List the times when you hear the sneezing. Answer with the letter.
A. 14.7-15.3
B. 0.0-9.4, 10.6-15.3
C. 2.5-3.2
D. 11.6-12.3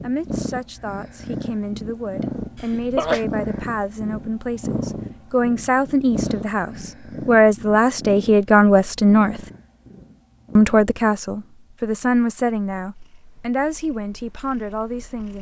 C.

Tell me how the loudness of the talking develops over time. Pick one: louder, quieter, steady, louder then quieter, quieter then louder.
louder then quieter.